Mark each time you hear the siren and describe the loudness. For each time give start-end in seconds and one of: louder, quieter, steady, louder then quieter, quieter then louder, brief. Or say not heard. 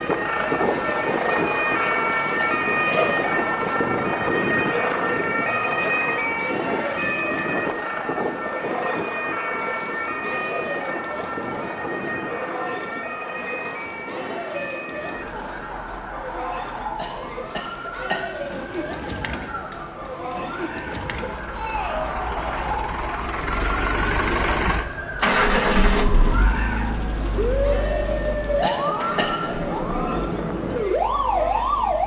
0.0-32.0 quieter then louder.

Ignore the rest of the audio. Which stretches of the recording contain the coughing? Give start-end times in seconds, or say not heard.
1.2-3.6, 16.9-18.2, 28.6-29.6.